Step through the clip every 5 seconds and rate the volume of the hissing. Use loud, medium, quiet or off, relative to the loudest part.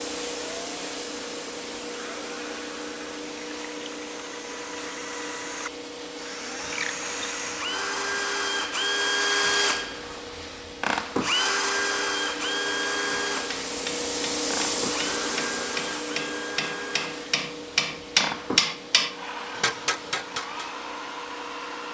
loud, medium, loud, loud, medium.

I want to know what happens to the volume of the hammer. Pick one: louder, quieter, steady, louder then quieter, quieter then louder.
louder then quieter.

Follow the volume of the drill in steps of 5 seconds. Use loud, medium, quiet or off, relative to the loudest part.
quiet, loud, loud, medium, medium.